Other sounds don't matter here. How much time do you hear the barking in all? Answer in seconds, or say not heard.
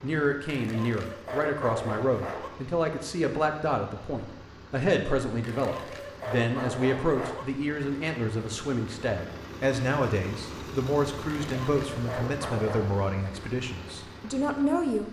6 s.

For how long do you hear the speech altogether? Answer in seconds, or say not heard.
15 s.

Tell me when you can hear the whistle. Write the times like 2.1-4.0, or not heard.
not heard.